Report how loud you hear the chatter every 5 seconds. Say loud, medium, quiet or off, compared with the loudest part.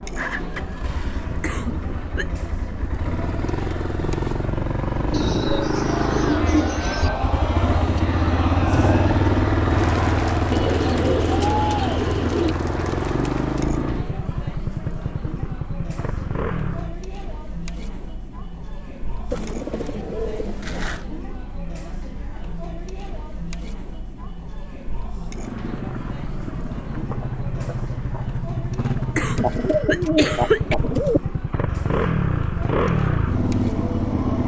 medium, loud, loud, medium, medium, medium, medium.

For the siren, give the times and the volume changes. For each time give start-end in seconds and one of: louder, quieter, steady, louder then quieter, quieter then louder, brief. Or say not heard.
not heard.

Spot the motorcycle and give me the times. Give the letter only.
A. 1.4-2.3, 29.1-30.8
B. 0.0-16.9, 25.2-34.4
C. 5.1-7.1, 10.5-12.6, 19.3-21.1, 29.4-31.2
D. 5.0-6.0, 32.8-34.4
B.